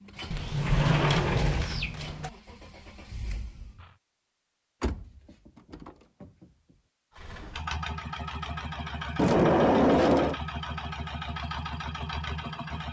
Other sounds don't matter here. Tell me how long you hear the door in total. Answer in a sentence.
You can hear the door for 5 seconds altogether.